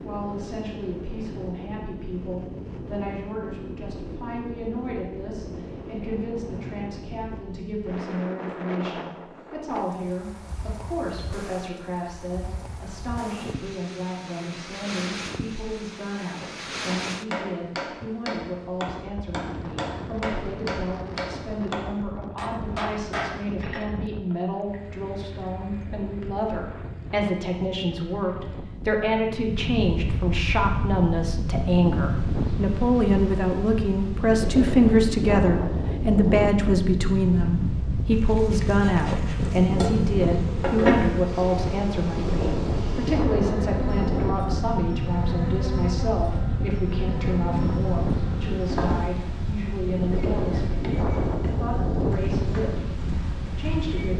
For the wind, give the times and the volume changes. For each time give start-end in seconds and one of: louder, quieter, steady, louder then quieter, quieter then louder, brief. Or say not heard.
0.0-54.1 louder.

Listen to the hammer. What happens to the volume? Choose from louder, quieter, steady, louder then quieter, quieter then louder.
steady.